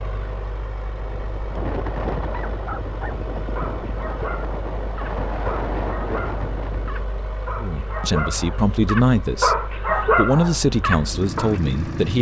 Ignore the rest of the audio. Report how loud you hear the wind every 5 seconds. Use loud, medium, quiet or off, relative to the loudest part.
loud, loud, off.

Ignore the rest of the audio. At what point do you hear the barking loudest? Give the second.
10 s.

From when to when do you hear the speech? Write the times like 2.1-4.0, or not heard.
7.6-12.1.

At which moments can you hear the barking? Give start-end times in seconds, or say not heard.
2.3-11.6.